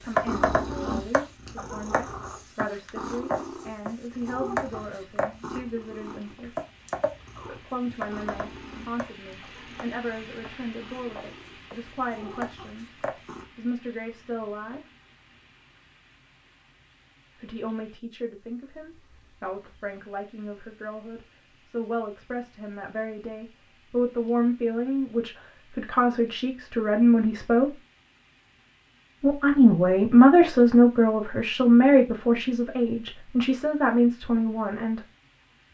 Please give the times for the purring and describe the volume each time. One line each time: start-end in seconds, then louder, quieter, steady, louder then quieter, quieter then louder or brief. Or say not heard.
0.0-13.4 quieter.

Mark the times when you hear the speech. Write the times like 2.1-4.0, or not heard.
0.0-6.5, 7.5-12.8, 13.6-14.8, 17.4-27.8, 29.2-35.0.